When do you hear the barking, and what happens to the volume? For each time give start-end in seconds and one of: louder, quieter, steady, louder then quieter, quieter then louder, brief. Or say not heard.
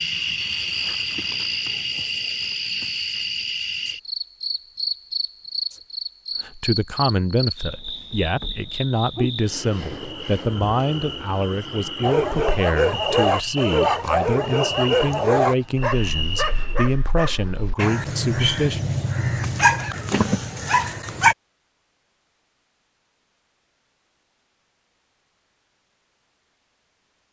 12.0-21.4 quieter then louder.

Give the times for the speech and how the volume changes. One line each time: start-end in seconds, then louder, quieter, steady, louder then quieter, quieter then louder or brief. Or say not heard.
6.4-18.8 steady.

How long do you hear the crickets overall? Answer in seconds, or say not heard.
17 s.